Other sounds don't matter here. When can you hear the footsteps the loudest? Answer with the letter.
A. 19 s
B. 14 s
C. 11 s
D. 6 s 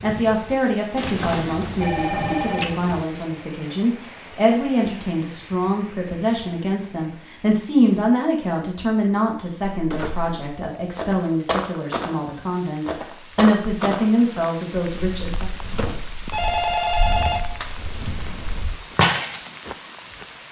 A.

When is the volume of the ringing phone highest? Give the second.
17 s.